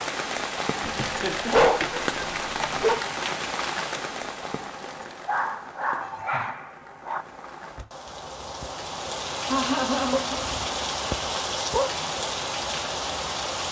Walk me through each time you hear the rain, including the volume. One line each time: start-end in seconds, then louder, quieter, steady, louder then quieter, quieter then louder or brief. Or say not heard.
0.0-13.6 quieter then louder.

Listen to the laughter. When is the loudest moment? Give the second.
10 s.